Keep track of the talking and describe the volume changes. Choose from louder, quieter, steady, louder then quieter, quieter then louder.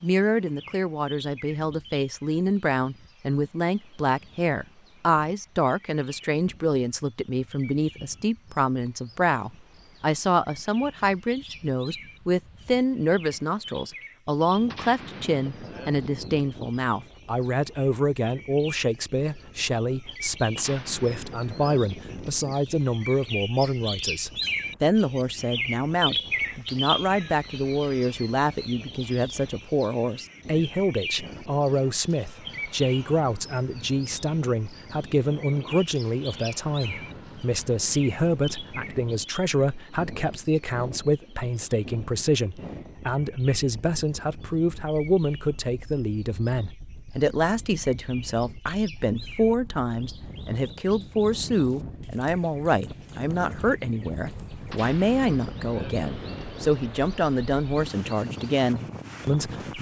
steady.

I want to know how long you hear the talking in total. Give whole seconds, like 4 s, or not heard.
60 s.